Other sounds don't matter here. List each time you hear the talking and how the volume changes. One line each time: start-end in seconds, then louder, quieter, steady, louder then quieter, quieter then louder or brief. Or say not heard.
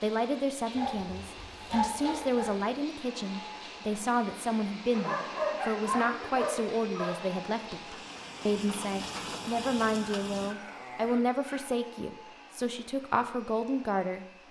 0.0-14.2 steady.